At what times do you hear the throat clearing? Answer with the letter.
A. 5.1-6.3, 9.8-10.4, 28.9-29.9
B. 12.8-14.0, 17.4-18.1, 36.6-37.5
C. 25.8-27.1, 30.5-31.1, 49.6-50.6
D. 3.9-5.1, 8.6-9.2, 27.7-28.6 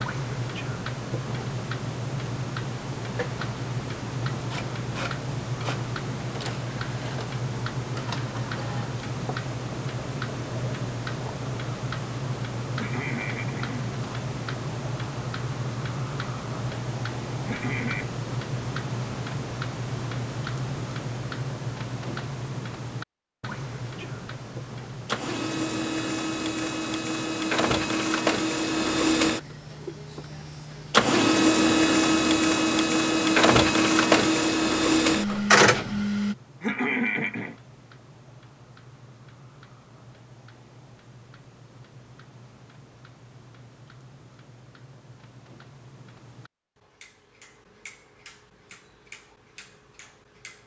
B.